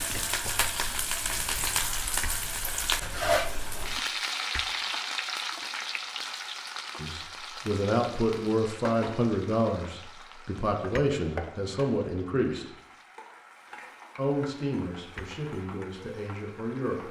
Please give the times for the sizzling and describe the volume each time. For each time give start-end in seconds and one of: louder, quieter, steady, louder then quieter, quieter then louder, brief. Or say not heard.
0.0-17.0 quieter.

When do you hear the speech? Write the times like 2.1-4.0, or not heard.
7.0-12.8, 14.2-17.0.